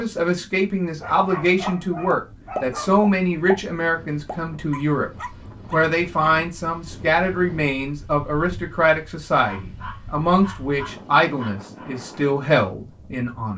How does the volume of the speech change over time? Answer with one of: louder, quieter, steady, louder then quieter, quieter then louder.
steady.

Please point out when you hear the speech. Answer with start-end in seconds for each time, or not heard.
0.0-5.1, 5.7-13.5.